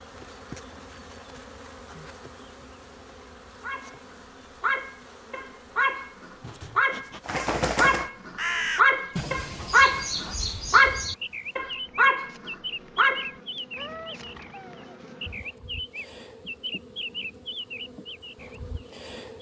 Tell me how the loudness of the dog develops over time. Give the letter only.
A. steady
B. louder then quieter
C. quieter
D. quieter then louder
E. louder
B.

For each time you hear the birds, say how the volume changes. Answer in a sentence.
The birds can be heard from 7.2 to 19.3 s, getting quieter.